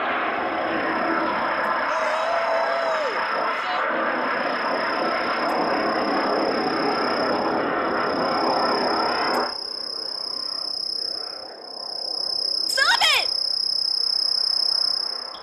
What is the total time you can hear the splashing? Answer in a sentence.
The splashing can't be heard in this clip.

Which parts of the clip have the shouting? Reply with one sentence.
The shouting can be heard from 1.9 to 3.9 s and from 12.7 to 13.2 s.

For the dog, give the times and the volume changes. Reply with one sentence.
The dog can't be heard in this clip.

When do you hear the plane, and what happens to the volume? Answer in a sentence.
You can hear the plane from 0.0 to 15.3 s, getting quieter.